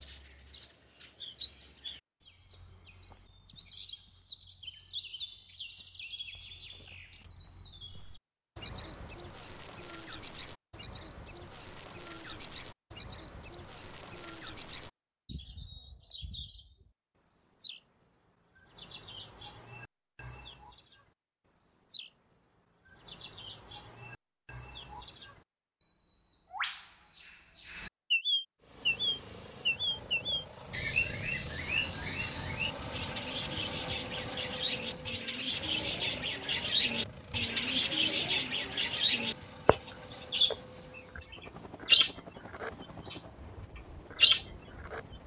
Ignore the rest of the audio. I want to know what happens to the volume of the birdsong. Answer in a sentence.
The volume of the birdsong goes up.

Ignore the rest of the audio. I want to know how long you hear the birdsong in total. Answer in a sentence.
You can hear the birdsong for 44 seconds altogether.